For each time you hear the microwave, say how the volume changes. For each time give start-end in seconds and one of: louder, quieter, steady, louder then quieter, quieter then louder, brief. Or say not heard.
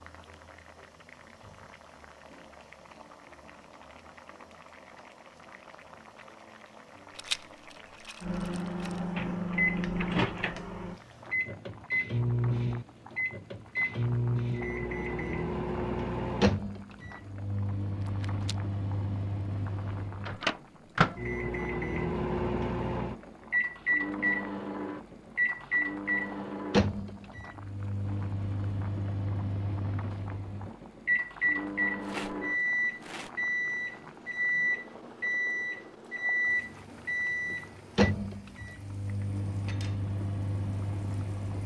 8.2-41.6 steady.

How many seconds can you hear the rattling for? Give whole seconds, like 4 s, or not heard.
4 s.